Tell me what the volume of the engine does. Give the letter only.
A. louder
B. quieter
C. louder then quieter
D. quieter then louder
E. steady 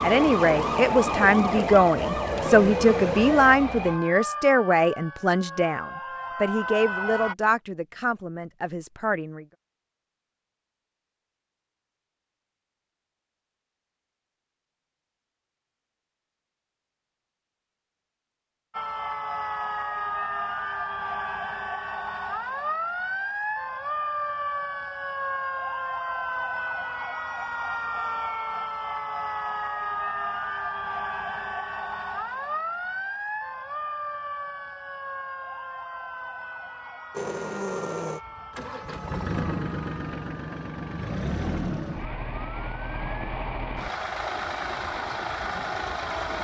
E.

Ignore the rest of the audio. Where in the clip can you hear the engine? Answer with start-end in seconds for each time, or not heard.
37.1-46.3.